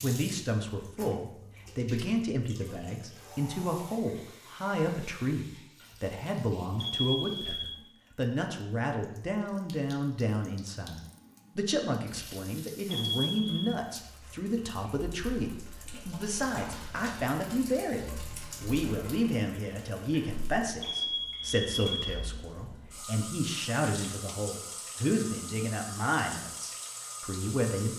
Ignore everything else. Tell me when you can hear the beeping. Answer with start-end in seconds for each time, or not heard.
6.8-7.8, 12.9-13.8, 20.8-21.9.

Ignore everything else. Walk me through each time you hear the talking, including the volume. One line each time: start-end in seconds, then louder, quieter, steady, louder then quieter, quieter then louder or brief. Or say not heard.
0.0-27.9 steady.